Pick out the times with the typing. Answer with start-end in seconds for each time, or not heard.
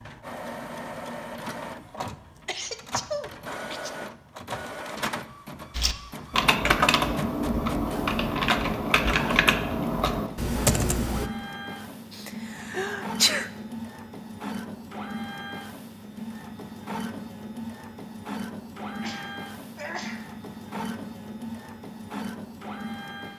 5.8-11.3.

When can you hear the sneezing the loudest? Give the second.
13 s.